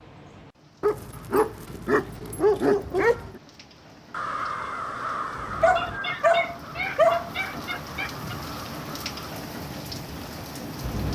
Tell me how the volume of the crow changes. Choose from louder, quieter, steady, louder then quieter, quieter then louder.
quieter.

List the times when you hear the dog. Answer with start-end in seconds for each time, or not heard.
0.8-3.4, 5.6-7.3.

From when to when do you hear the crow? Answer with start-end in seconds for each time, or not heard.
4.1-9.3.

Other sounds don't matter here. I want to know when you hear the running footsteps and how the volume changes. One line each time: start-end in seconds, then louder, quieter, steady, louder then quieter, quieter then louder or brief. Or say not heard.
not heard.